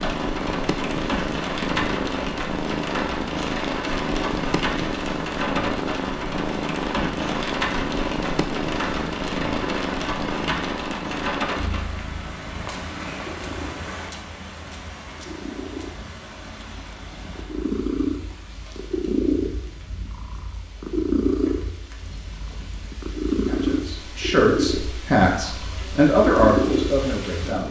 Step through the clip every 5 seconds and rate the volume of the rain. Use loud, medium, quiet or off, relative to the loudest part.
loud, loud, loud, quiet, quiet, medium.